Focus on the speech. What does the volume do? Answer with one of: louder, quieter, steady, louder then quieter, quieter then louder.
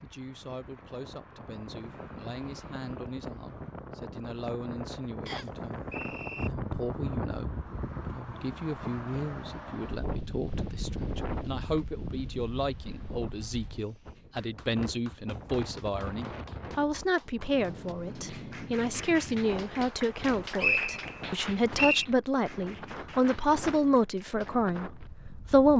louder.